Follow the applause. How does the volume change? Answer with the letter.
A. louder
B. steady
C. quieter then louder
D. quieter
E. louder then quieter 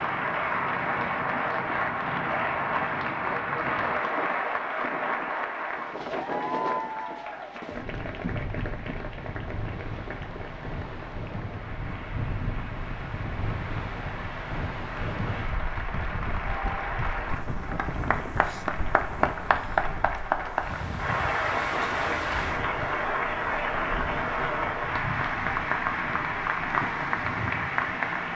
C.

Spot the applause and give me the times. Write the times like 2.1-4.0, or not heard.
0.0-28.3.